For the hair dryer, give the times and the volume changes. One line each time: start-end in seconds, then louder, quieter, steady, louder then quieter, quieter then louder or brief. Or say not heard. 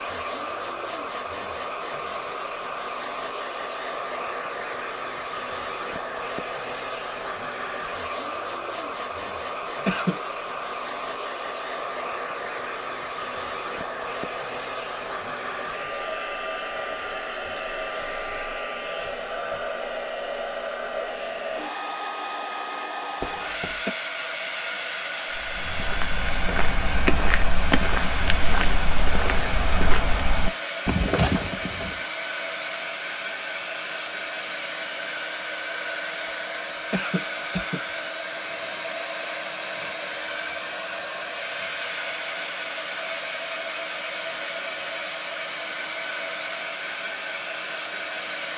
0.0-48.5 steady.